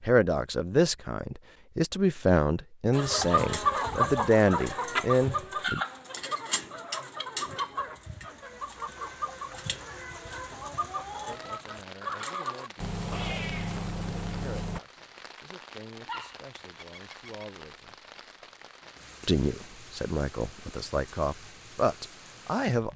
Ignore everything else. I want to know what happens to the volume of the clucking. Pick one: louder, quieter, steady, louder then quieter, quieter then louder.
quieter.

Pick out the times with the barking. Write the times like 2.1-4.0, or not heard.
16.1-17.4.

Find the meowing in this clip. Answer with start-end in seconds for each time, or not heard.
12.8-14.8.